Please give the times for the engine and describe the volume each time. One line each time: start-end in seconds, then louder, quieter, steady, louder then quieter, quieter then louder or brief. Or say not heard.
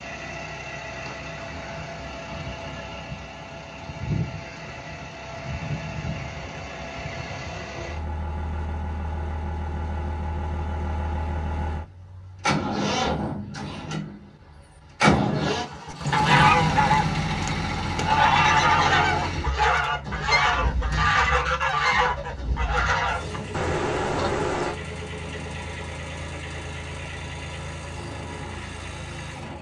0.0-29.5 louder then quieter.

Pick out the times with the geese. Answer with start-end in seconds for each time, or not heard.
15.9-24.8.